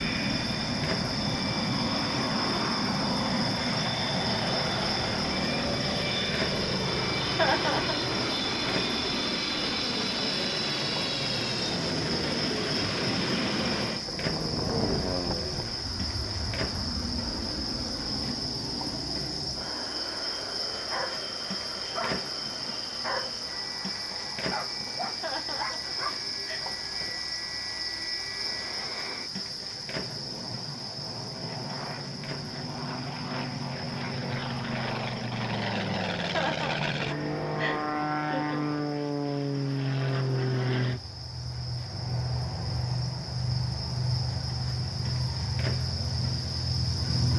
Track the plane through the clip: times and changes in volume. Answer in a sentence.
You can hear the plane from 0.0 to 47.3 s, getting quieter then louder.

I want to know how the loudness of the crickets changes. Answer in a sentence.
The loudness of the crickets goes down.